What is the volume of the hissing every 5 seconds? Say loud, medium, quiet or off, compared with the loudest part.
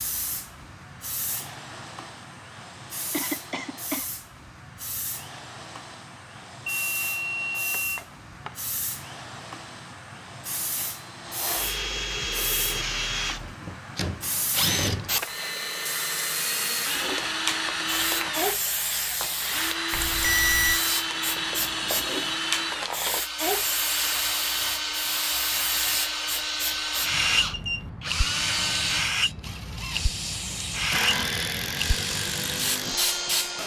medium, medium, medium, loud, loud, loud, loud.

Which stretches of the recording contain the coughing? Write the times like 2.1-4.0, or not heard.
3.1-4.0.